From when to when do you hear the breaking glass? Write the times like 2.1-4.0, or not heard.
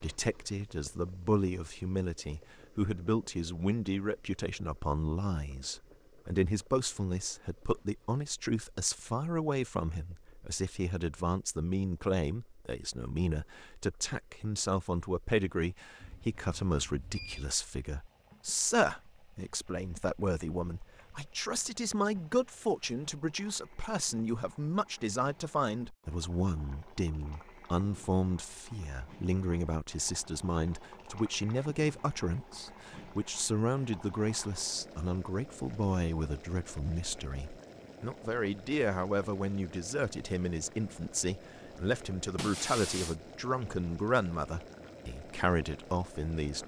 42.4-43.1.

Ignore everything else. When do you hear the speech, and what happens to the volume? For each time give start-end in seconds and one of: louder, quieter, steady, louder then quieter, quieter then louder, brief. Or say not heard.
0.0-46.6 steady.